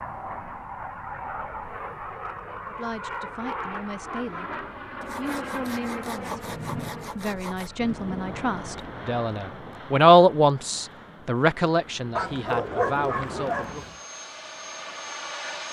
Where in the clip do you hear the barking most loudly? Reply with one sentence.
The loudest moment of the barking is at 13 seconds.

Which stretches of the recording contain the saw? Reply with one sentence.
The saw can be heard from 5.0 to 7.7 s.